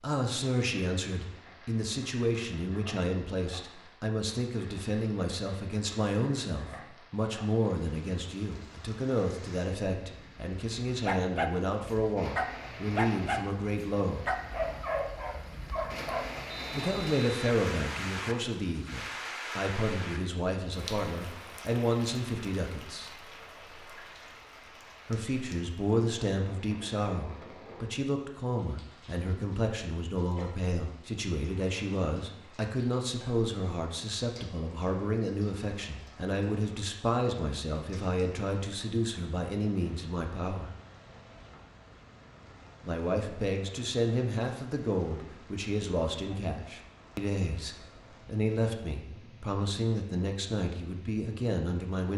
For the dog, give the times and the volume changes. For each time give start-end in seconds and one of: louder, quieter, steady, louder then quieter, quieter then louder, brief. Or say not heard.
11.0-16.3 quieter.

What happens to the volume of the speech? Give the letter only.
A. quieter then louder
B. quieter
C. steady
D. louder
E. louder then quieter
C.